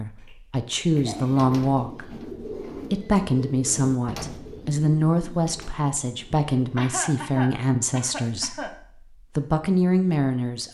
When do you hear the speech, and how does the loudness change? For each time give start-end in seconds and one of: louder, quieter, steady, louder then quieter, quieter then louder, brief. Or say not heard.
0.0-8.8 steady
9.3-10.6 brief.